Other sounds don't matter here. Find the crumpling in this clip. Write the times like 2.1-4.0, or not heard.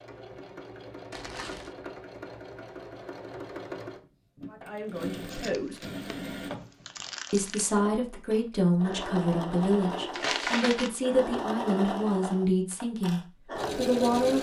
1.1-1.8, 5.3-7.8, 10.1-10.9.